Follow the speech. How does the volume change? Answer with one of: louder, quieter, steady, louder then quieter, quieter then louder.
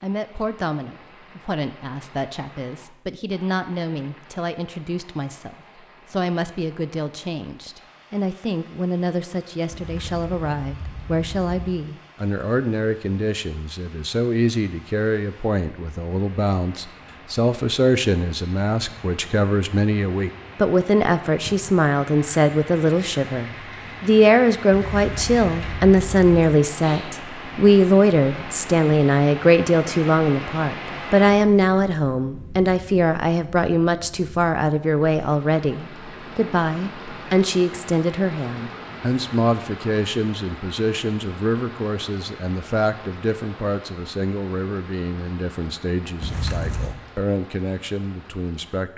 louder then quieter.